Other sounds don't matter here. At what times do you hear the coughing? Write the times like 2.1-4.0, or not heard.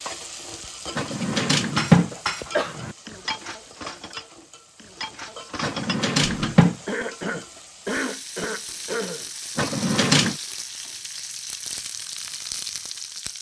2.1-2.8, 6.8-9.3.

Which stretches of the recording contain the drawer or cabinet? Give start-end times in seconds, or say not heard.
0.9-3.0, 5.6-6.8, 9.6-10.3.